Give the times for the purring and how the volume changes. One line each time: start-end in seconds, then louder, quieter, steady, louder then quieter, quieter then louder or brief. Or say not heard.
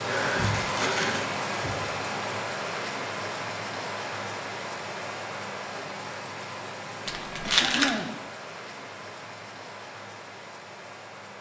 not heard.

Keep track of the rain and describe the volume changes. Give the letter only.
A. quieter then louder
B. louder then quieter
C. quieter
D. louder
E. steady
C.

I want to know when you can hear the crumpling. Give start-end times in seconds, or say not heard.
0.3-1.9, 7.0-8.1.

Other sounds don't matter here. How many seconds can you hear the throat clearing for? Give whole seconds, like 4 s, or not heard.
2 s.